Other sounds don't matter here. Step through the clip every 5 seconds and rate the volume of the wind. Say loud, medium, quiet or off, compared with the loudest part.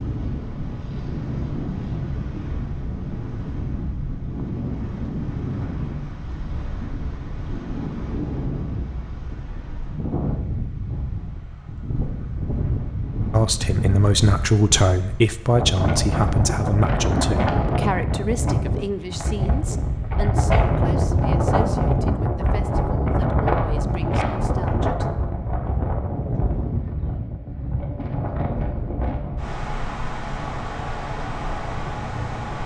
medium, medium, medium, loud, loud, medium, medium.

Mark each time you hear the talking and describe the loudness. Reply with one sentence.
The talking can be heard from 13.3 to 25.1 s, getting quieter.